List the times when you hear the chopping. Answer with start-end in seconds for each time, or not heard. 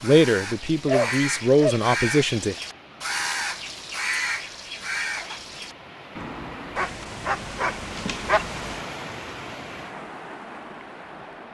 not heard.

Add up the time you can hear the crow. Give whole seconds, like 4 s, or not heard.
7 s.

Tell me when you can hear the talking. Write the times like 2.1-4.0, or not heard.
0.0-2.5.